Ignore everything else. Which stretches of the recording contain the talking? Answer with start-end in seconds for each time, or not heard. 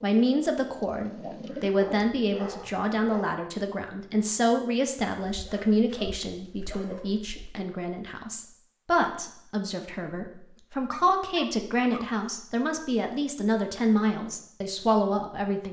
0.0-15.6.